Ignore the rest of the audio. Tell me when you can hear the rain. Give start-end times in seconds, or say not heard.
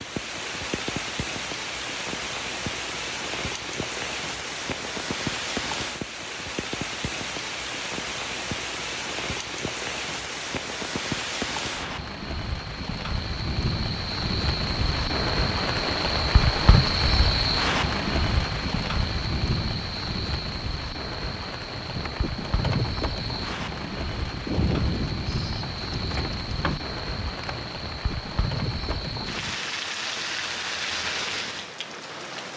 0.0-32.5.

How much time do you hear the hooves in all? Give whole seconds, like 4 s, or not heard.
8 s.